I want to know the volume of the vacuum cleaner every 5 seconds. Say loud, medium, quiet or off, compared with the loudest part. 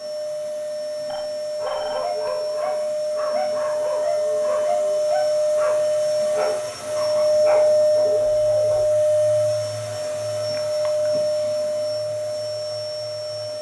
medium, loud, medium.